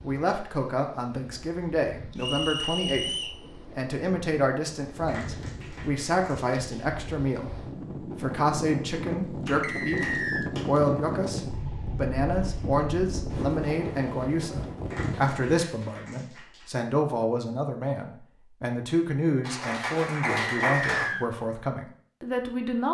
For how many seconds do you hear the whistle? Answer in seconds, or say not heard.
3 s.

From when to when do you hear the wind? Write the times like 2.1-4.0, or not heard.
0.0-15.6.